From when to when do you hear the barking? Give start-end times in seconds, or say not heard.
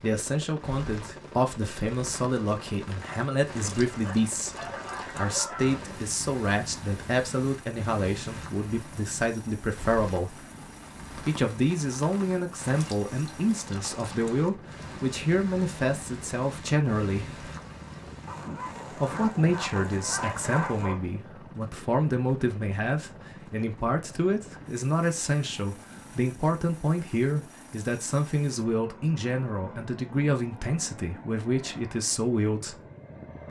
3.9-5.8, 18.2-21.1.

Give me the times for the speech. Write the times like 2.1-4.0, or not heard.
0.0-10.4, 11.2-17.4, 18.9-32.8.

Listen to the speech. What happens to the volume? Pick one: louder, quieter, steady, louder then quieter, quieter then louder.
steady.